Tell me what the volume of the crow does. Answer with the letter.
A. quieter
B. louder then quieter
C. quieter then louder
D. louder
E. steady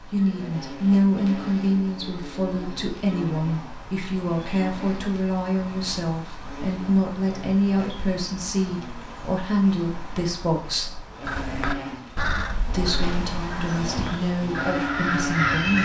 C.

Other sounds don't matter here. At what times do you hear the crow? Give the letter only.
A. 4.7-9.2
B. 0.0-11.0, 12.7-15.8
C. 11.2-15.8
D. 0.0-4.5
C.